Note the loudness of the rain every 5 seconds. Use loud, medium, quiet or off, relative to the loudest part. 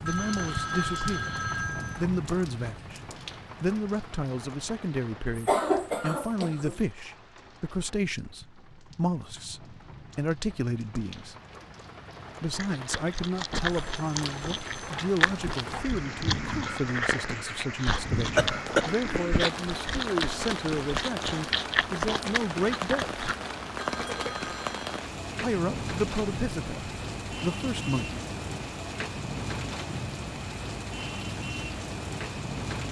medium, quiet, medium, loud, loud, loud, loud.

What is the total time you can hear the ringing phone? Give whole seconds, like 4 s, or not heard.
4 s.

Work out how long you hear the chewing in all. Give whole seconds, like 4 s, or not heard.
11 s.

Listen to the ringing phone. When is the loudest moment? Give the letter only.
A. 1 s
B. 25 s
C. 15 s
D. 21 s
A.